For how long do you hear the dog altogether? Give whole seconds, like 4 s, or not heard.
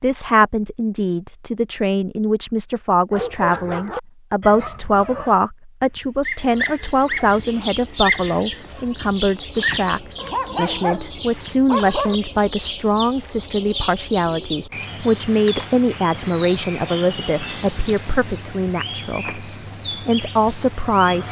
9 s.